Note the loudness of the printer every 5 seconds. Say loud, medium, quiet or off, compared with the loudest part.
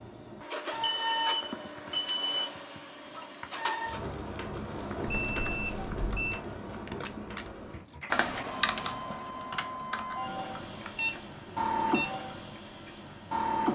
loud, medium, loud.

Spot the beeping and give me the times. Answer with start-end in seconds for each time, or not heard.
0.7-2.5, 5.0-6.4, 10.8-12.2.